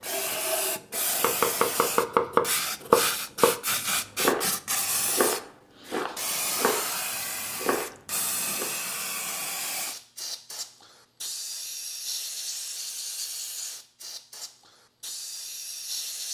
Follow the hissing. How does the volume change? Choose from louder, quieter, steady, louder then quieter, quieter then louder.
quieter.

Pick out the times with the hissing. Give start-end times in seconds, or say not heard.
0.0-16.2.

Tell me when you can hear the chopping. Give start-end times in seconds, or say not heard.
0.2-8.7.